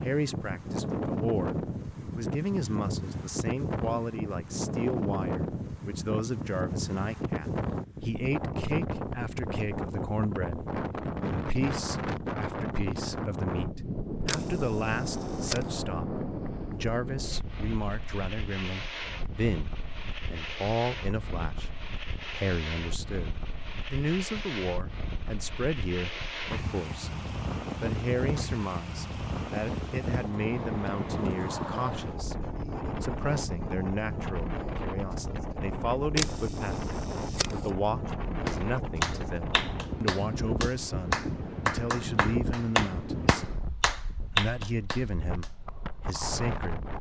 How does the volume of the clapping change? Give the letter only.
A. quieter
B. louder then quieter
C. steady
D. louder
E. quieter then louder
C.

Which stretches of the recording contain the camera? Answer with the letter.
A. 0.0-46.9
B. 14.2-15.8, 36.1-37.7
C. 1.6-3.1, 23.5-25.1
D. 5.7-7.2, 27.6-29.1
B.